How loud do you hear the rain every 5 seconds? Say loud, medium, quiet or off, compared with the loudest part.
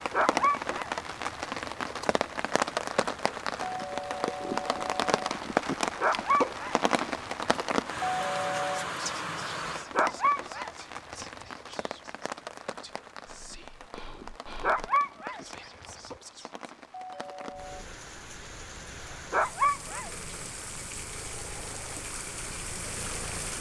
loud, loud, medium, quiet, medium.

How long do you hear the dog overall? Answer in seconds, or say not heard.
7 s.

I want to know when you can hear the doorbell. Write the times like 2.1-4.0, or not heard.
3.6-5.1, 8.1-8.9, 16.9-17.9.